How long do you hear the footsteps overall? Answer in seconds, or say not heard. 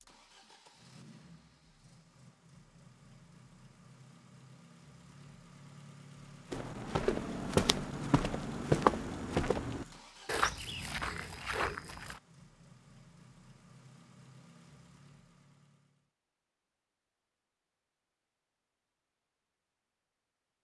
6 s.